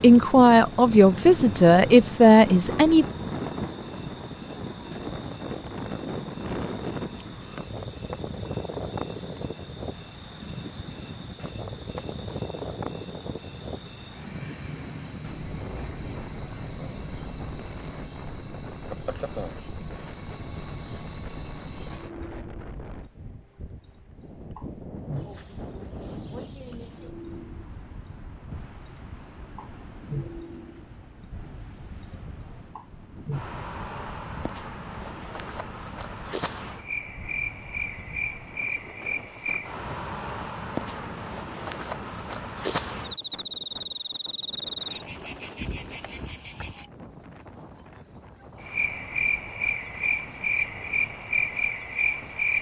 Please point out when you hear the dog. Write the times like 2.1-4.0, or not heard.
not heard.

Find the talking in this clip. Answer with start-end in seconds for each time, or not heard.
0.0-3.0.